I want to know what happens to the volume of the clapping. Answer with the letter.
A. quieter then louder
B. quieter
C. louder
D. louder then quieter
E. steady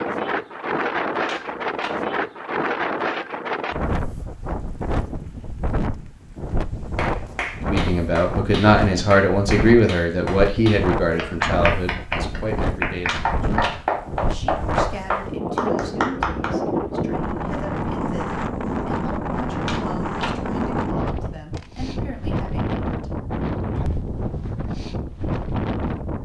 C.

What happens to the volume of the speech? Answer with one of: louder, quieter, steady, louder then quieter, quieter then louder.
quieter.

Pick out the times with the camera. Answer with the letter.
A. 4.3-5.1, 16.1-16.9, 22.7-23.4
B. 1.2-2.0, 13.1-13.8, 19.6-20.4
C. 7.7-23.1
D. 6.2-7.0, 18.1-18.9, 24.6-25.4
B.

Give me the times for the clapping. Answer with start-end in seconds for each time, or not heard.
7.0-16.5.